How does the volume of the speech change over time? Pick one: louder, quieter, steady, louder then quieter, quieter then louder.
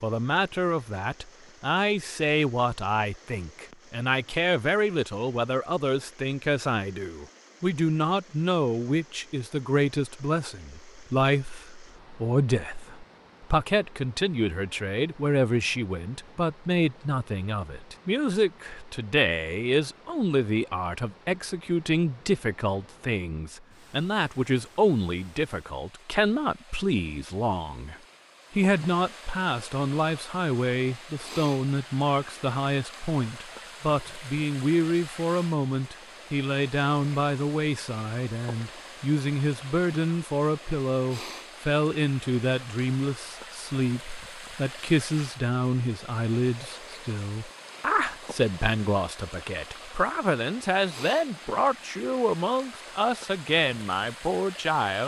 steady.